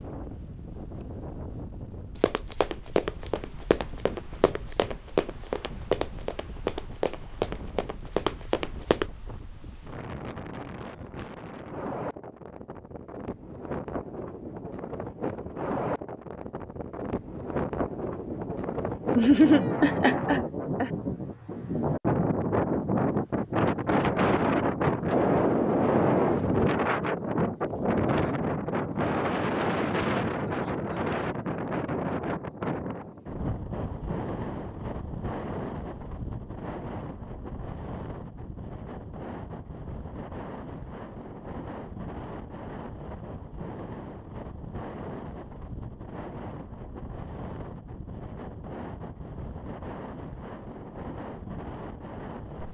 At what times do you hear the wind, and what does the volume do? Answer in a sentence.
The wind can be heard from 0.0 to 52.6 s, getting louder then quieter.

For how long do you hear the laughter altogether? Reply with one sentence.
The laughter can be heard for 2 seconds in total.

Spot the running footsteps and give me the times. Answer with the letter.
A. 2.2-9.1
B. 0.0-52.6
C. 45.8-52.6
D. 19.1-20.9
A.